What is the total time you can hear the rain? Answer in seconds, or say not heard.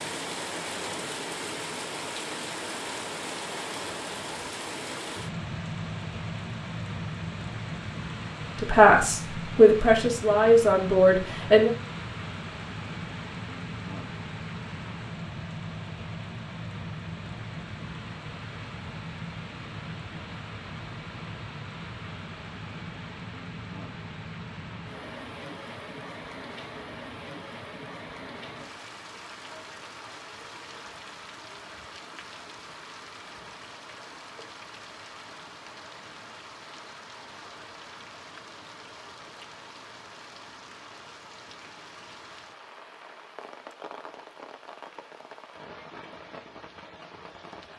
48 s.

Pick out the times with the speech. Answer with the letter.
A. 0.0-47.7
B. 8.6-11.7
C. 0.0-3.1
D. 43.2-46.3
B.